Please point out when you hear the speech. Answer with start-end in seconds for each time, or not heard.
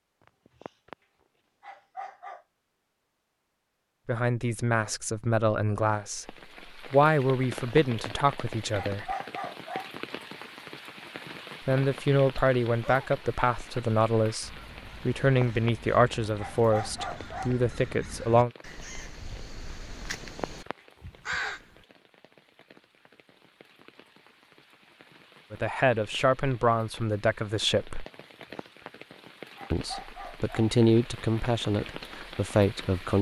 4.0-9.1, 11.7-18.5, 25.5-28.1, 29.7-33.1.